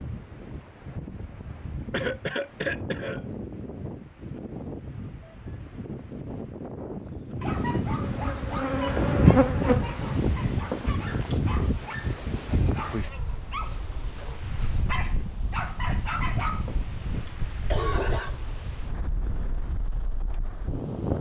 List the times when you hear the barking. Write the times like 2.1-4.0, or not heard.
7.3-16.8.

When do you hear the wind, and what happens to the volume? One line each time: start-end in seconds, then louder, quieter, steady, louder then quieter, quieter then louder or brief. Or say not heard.
0.0-21.1 louder then quieter.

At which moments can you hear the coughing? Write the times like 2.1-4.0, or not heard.
1.9-3.2, 10.7-11.3, 16.6-18.4.